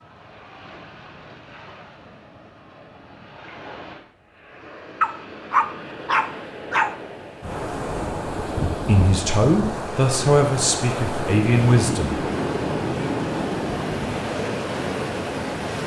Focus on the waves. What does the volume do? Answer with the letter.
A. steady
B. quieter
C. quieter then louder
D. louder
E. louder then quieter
D.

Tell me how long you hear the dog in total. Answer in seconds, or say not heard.
2 s.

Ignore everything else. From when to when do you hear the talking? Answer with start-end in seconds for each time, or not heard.
8.8-12.2.